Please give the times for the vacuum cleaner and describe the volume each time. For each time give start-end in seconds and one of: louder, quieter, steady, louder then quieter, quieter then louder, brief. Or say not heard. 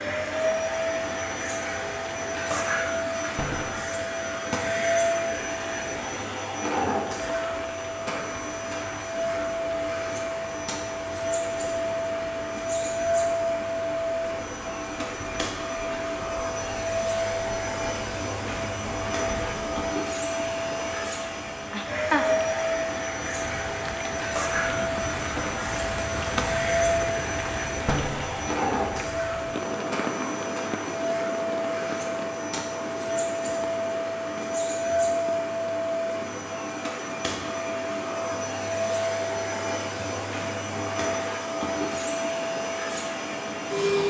0.0-44.0 steady.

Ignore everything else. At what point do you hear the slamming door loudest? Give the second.
28 s.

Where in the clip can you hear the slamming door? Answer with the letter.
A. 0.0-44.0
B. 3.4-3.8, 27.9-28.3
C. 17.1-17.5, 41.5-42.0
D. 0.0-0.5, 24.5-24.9
B.